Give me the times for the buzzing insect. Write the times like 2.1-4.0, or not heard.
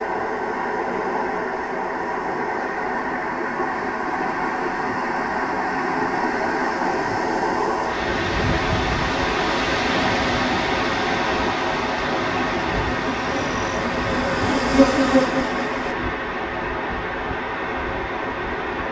12.9-15.9.